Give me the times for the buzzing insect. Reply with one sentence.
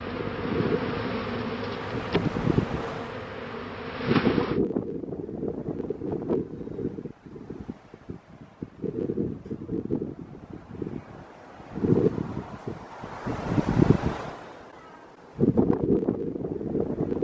You can hear the buzzing insect from 0.0 to 4.6 s.